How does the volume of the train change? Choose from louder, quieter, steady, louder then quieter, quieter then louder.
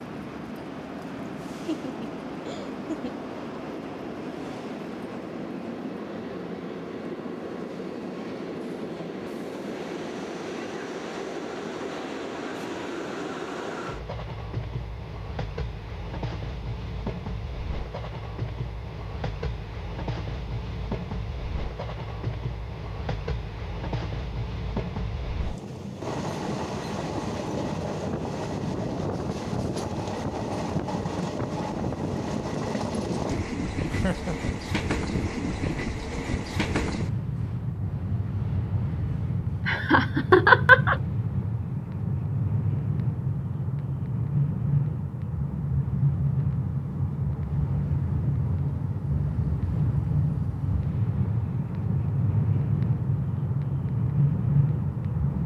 louder.